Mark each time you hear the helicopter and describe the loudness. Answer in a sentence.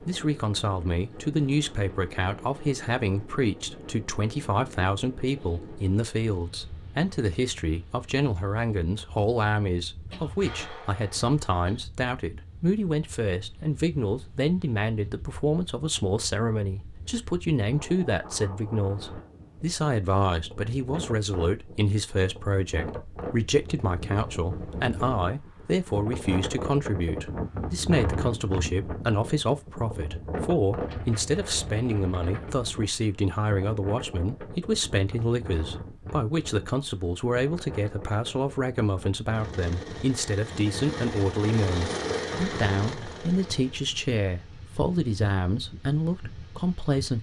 You can hear the helicopter from 39.3 to 43.8 s, getting louder then quieter.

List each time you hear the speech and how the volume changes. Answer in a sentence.
The speech can be heard from 0.0 to 47.1 s, at a steady volume.